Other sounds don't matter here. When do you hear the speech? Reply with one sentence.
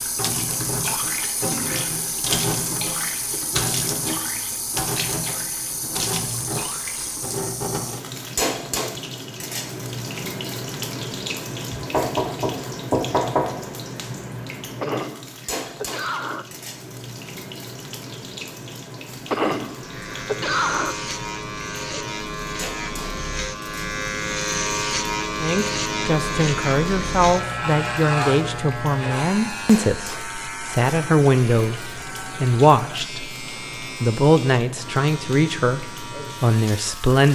You can hear the speech from 25.4 to 37.3 s.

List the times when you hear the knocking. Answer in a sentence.
You can hear the knocking from 11.8 to 13.5 s.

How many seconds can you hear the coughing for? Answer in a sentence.
The coughing can be heard for 3 seconds in total.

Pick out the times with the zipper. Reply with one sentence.
The zipper can't be heard in this clip.